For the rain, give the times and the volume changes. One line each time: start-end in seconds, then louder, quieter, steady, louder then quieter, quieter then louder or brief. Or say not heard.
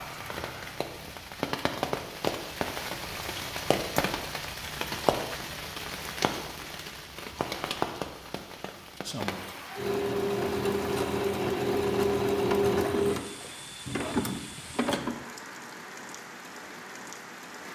0.0-17.7 quieter.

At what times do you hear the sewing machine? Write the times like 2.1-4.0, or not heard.
9.8-15.2.